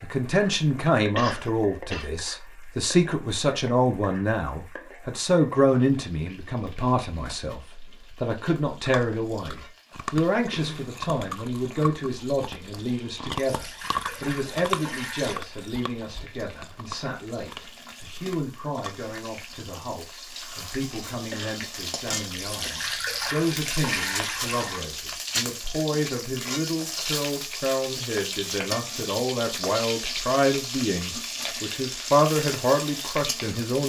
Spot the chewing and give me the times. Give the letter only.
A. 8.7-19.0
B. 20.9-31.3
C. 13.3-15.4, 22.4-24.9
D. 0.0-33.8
A.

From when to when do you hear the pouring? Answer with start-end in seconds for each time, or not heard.
13.3-15.4, 22.4-24.9.